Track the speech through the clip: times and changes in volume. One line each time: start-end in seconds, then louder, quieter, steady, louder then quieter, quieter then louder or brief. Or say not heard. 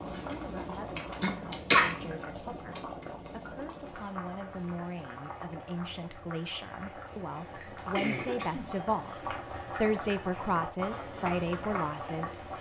0.3-12.4 louder.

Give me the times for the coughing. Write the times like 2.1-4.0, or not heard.
1.2-1.9, 7.5-9.2.